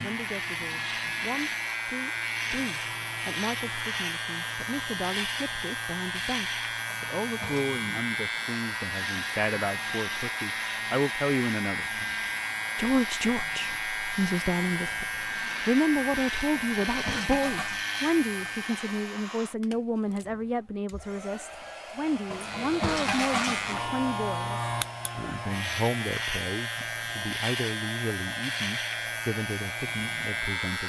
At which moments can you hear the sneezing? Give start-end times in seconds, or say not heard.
not heard.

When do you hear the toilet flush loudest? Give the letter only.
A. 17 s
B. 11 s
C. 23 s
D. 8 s
C.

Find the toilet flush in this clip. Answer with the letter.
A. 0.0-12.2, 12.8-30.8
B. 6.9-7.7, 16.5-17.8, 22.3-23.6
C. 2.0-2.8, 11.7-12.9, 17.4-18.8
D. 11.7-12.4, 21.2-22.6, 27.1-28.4
B.